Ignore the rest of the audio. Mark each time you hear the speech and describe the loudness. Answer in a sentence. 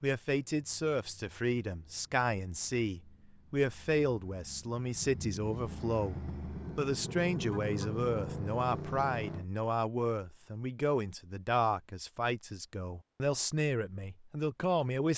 You can hear the speech from 0.0 to 15.1 s, at a steady volume.